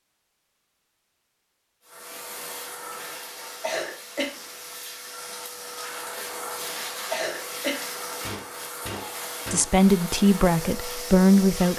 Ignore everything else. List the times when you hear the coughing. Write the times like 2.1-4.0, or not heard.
3.6-4.3, 7.1-7.8.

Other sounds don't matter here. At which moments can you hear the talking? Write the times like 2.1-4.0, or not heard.
9.5-11.7.